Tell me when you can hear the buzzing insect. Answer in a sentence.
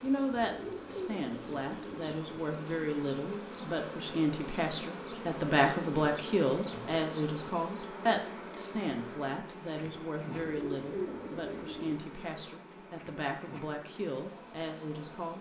You can hear the buzzing insect from 0.0 to 15.3 s.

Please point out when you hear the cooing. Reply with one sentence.
The cooing can be heard from 0.3 to 2.1 s and from 10.3 to 12.0 s.